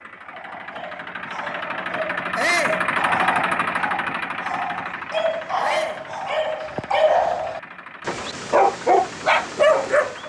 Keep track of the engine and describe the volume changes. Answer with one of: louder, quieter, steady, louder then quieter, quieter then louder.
louder then quieter.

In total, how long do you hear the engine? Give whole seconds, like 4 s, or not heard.
10 s.